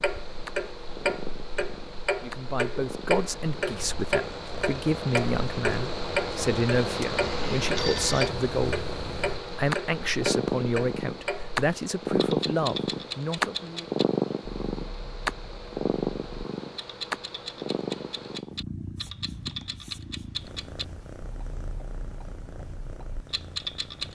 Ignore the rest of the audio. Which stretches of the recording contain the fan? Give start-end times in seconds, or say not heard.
0.0-18.4.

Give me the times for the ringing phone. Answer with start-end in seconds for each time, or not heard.
7.2-8.3.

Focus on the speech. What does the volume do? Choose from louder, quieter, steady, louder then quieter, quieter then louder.
steady.